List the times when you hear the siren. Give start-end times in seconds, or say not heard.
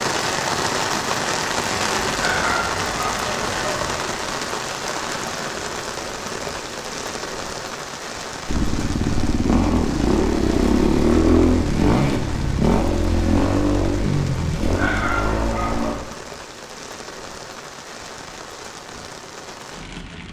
not heard.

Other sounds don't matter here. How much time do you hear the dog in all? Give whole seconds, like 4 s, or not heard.
3 s.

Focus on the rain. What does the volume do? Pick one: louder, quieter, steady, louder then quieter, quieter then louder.
quieter.